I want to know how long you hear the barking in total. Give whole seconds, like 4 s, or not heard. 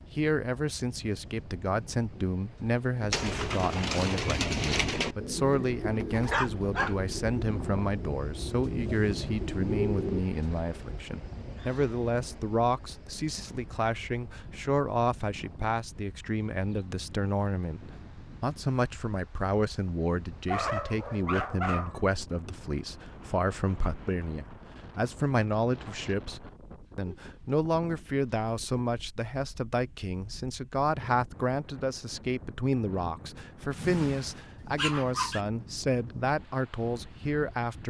4 s.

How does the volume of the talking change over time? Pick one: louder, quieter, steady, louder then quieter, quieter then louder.
steady.